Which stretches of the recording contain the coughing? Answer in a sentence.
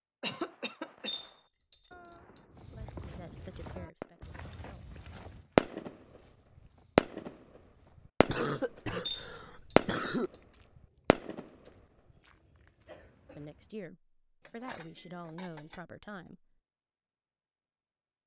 You can hear the coughing from 0.2 to 1.1 s, from 8.2 to 10.3 s and from 12.8 to 13.7 s.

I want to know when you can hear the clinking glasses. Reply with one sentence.
You can hear the clinking glasses from 1.1 to 2.4 s, from 9.1 to 10.4 s and from 14.4 to 15.8 s.